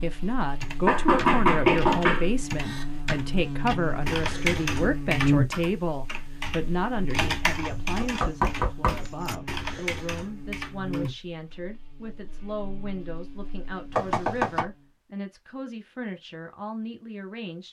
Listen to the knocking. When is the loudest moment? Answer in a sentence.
The volume of the knocking peaks at 2 seconds.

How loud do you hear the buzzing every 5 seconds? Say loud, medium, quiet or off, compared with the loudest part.
medium, loud, medium, off.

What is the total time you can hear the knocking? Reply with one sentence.
The knocking can be heard for 4 seconds in total.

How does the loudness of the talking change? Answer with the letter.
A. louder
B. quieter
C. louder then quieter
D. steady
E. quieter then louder
B.